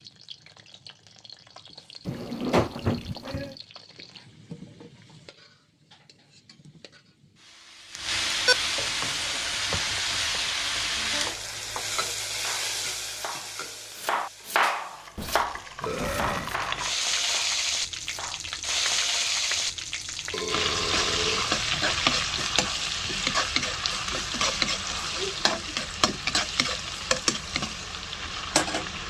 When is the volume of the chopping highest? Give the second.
15 s.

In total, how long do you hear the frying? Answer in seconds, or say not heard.
29 s.